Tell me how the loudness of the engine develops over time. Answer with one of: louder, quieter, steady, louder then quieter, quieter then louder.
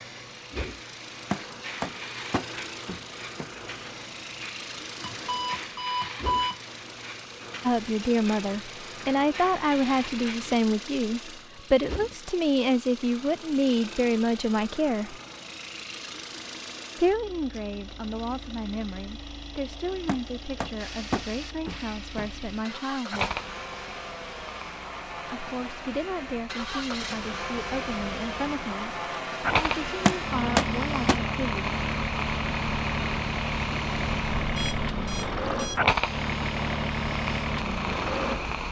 louder.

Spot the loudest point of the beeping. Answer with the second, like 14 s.
6 s.